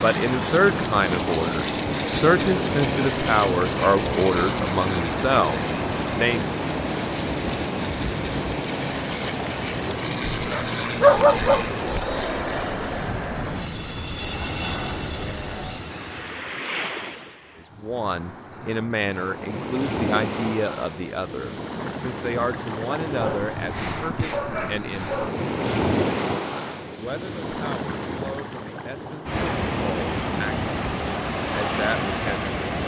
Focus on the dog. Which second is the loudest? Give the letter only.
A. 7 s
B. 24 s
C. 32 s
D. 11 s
D.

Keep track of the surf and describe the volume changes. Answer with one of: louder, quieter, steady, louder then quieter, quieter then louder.
quieter then louder.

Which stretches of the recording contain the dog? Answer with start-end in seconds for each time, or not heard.
10.4-12.1, 23.1-25.3.